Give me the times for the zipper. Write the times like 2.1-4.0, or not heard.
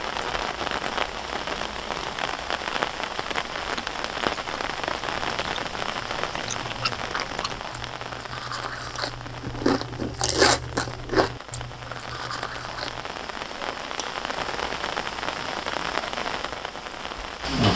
not heard.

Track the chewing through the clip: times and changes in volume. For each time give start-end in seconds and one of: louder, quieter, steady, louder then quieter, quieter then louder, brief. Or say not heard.
3.6-13.1 louder then quieter.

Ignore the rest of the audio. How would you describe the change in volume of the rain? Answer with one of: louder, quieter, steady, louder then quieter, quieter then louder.
quieter then louder.